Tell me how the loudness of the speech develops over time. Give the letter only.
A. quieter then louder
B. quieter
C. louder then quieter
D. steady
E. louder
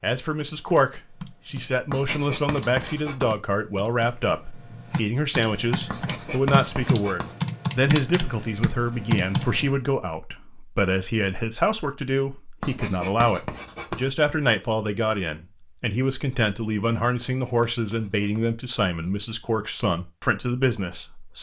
D.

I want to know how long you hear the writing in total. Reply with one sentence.
The writing can be heard for 6 seconds in total.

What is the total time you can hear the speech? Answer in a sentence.
The speech can be heard for 21 seconds in total.